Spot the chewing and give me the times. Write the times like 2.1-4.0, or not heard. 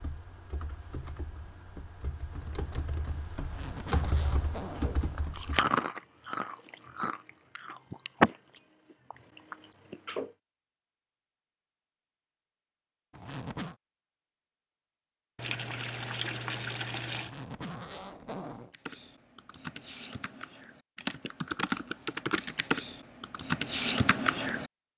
4.8-8.3, 9.1-10.3.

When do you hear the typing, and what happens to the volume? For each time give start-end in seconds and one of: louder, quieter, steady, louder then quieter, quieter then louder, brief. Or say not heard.
0.0-5.7 louder
18.7-24.7 louder.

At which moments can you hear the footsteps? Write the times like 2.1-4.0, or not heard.
not heard.